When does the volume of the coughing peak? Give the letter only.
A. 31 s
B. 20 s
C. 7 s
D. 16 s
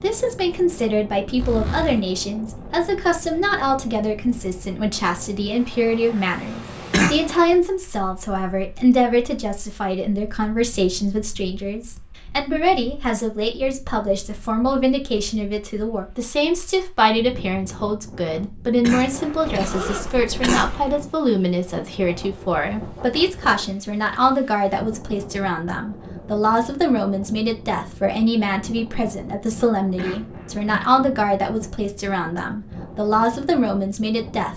C.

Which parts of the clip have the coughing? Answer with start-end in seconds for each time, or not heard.
6.9-7.5, 18.8-20.7, 29.9-31.0.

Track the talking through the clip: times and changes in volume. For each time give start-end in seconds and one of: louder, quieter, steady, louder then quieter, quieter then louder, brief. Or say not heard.
0.0-34.5 steady.